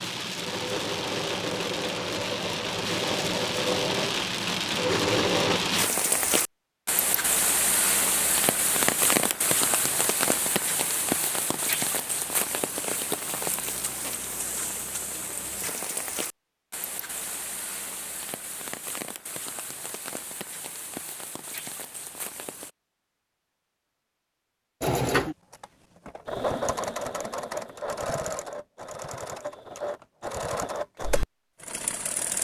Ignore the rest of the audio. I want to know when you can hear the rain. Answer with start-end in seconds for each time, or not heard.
0.0-22.7.